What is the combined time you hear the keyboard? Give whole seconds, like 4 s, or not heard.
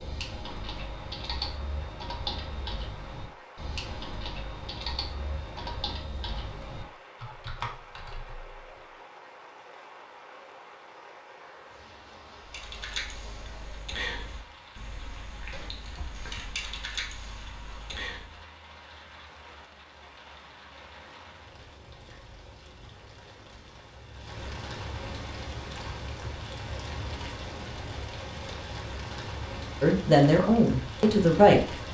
15 s.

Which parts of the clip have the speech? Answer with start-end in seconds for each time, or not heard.
29.8-31.8.